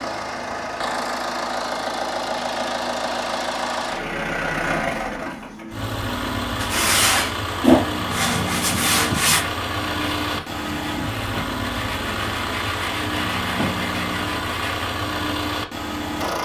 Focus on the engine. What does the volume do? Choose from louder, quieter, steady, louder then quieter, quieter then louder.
steady.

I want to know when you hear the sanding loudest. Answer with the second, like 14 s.
8 s.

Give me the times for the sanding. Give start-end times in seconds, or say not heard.
6.6-14.8.